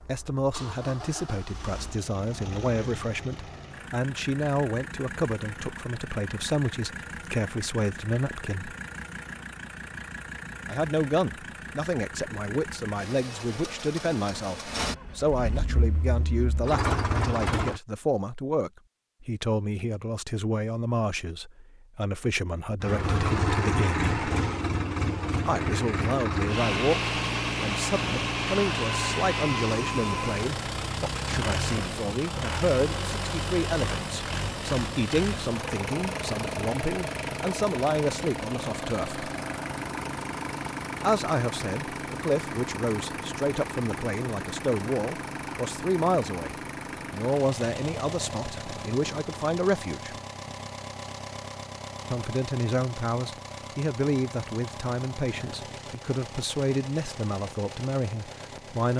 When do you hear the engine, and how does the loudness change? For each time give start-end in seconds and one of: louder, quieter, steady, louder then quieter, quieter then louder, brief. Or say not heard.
0.0-17.8 louder
22.8-58.9 quieter.